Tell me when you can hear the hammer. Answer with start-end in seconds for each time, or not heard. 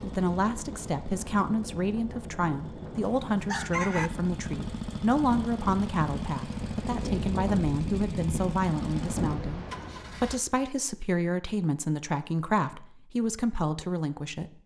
not heard.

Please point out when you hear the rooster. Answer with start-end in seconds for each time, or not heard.
3.0-4.1.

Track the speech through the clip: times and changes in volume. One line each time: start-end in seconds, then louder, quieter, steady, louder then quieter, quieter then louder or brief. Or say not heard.
0.0-14.6 steady.